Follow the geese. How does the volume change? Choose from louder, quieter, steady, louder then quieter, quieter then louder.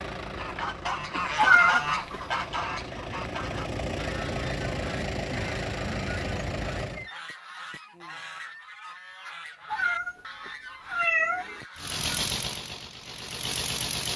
quieter.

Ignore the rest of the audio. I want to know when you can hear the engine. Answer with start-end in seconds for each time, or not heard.
0.0-7.1, 11.8-14.1.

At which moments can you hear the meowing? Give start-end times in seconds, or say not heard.
1.4-2.1, 9.7-11.6.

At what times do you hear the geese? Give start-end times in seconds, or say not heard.
0.3-12.1.